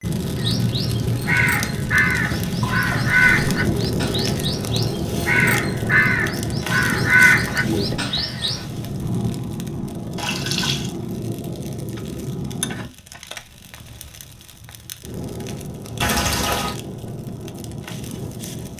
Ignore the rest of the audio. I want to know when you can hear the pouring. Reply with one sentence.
You can hear the pouring from 2.6 to 3.1 s, from 10.2 to 10.9 s and from 16.0 to 16.8 s.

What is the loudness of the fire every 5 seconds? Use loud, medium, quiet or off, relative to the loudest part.
loud, loud, medium, medium.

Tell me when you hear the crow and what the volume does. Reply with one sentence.
The crow can be heard from 0.3 to 8.7 s, getting quieter then louder.